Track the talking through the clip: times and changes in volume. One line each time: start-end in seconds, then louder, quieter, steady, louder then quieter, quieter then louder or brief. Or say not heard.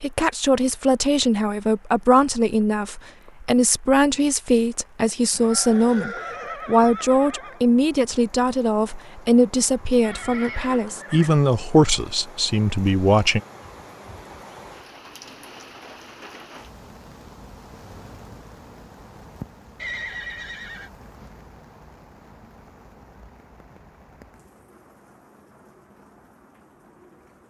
0.0-13.4 steady.